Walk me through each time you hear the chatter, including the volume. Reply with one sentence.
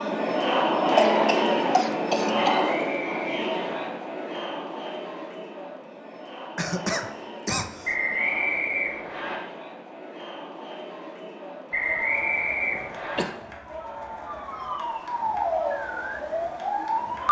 You can hear the chatter from 0.0 to 17.2 s, getting quieter.